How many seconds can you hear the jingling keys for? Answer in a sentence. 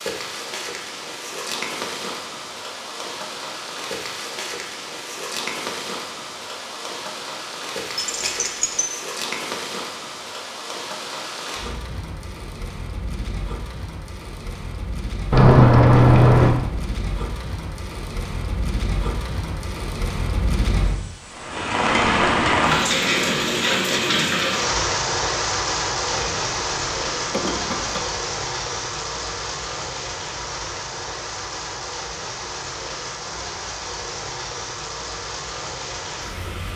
The jingling keys can be heard for 4 seconds in total.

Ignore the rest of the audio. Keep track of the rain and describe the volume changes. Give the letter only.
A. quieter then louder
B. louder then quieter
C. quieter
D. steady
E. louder
B.